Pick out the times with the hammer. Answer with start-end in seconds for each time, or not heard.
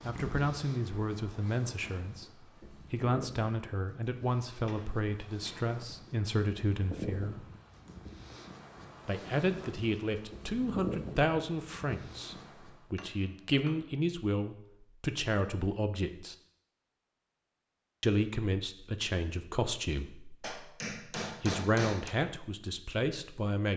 4.5-5.8, 12.9-14.0, 20.4-22.1.